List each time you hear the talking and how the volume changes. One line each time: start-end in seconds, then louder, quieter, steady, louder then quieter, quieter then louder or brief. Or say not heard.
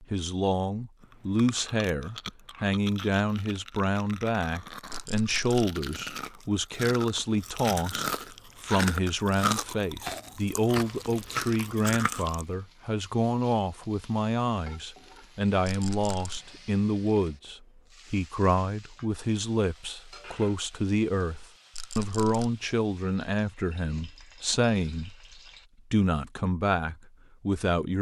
0.0-27.9 steady.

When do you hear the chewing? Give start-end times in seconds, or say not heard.
1.0-12.4.